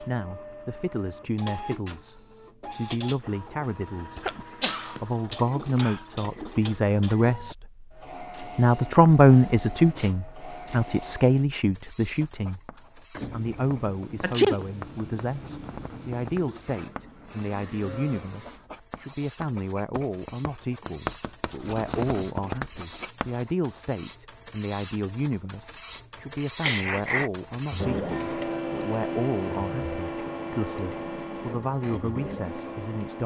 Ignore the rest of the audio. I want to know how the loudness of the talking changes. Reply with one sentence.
The loudness of the talking goes up, then down.